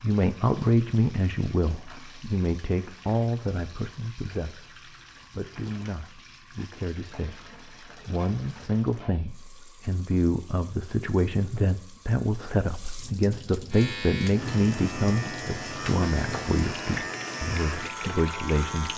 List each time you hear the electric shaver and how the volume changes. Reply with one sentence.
You can hear the electric shaver from 13.7 to 18.9 s, at a steady volume.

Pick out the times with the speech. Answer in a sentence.
The speech can be heard from 0.0 to 18.9 s.